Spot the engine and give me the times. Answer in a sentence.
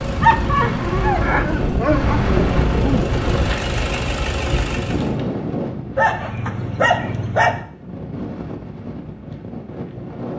You can hear the engine from 0.0 to 5.2 s.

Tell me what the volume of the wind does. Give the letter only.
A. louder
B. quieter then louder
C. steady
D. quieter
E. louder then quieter
D.